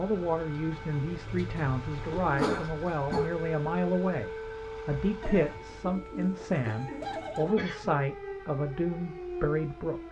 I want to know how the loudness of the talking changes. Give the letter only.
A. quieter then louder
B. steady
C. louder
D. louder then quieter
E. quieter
B.